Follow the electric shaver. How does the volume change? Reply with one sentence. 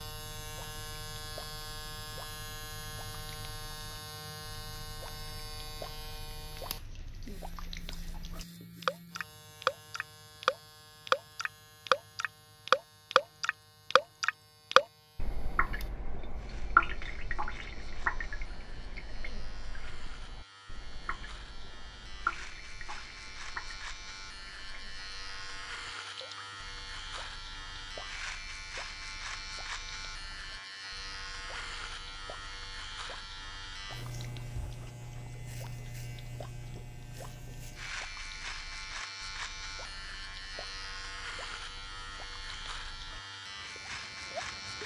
The loudness of the electric shaver goes down, then up.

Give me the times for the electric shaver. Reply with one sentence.
The electric shaver can be heard from 0.0 to 44.8 s.